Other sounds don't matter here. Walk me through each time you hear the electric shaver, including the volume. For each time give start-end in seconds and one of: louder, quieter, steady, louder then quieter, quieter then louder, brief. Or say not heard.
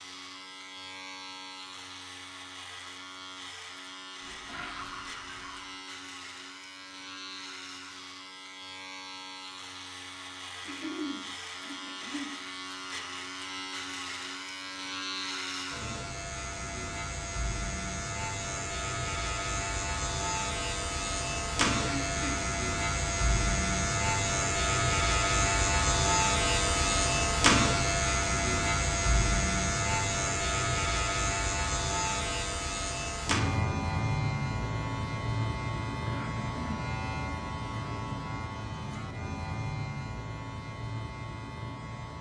0.0-42.1 louder then quieter.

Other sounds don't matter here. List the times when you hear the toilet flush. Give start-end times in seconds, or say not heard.
4.2-5.7.